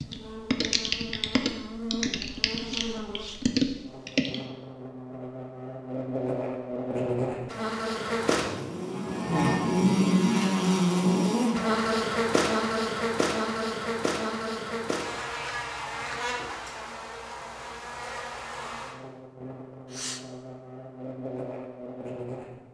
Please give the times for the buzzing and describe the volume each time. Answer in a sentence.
The buzzing can be heard from 0.0 to 22.6 s, getting louder then quieter.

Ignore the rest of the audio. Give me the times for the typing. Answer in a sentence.
The typing can be heard from 0.0 to 4.4 s.